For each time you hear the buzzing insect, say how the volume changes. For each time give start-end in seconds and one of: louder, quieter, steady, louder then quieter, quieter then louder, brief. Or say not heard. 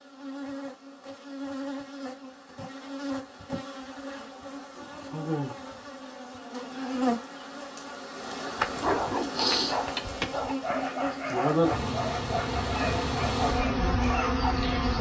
0.0-14.9 louder.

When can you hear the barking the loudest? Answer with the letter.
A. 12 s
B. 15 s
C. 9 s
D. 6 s
C.